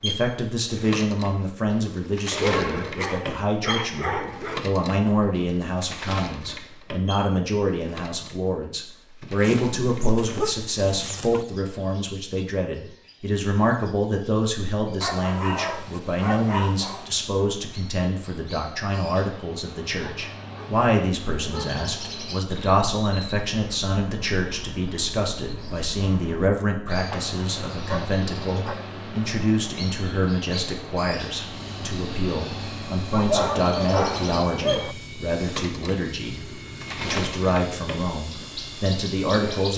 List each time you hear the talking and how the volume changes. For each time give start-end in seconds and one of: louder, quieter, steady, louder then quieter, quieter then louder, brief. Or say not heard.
0.0-39.7 steady.